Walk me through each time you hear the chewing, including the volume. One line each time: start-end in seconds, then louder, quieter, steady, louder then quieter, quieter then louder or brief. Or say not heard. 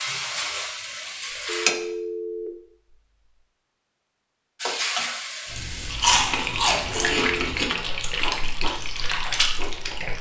5.5-10.1 quieter.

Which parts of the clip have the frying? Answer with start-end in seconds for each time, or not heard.
0.0-1.8, 4.6-10.1.